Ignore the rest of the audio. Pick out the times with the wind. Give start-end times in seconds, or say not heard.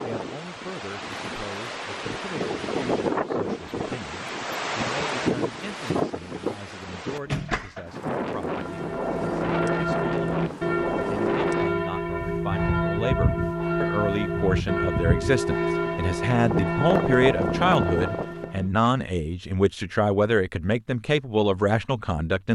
0.0-18.6.